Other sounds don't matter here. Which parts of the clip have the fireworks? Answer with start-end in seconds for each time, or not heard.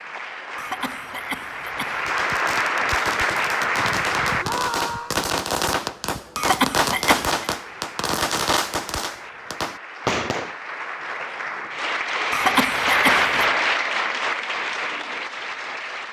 1.9-10.6.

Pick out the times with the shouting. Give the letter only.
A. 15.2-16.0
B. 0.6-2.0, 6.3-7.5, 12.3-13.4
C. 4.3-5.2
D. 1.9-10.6
C.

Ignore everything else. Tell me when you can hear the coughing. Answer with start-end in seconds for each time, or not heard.
0.6-2.0, 6.3-7.5, 12.3-13.4.